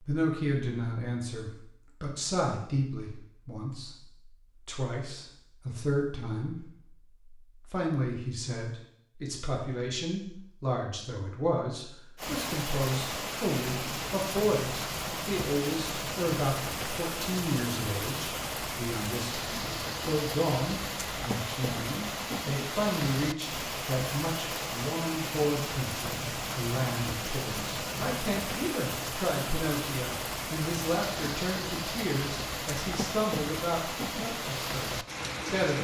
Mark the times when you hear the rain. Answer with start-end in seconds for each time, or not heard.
12.2-35.8.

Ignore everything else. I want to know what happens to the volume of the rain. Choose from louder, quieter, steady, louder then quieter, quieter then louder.
steady.